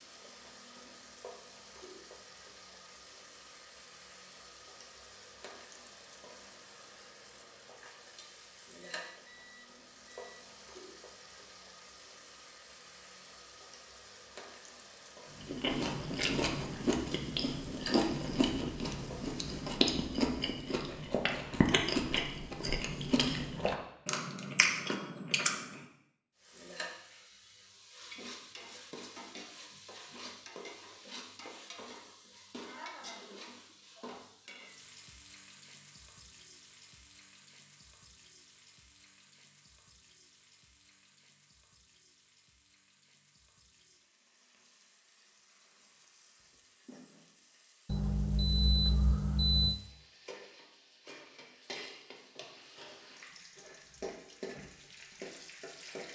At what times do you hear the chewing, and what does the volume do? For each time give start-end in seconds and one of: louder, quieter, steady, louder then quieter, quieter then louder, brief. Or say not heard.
15.4-25.8 steady.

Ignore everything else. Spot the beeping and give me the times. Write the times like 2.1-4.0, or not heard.
8.8-10.3, 47.9-49.8.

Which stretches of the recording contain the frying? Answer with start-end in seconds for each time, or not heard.
0.0-19.6, 26.4-56.1.